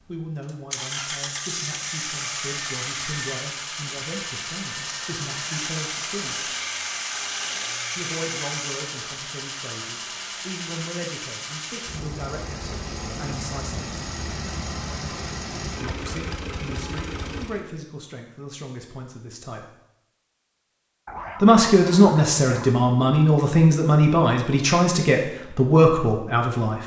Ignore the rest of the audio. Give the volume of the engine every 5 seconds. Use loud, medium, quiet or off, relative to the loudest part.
loud, loud, loud, loud, off, off.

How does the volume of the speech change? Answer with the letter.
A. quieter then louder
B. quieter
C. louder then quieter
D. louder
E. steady
D.